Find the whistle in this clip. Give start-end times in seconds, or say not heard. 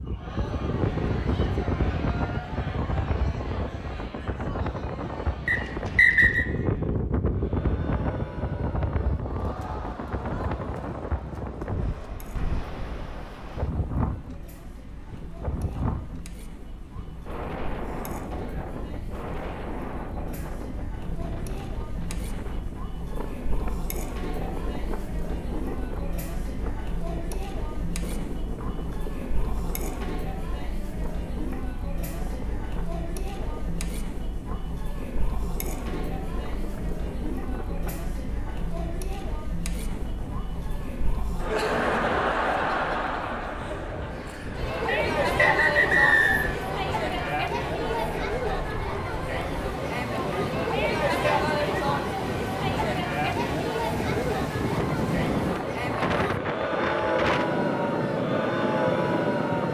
5.5-6.5, 44.9-46.5.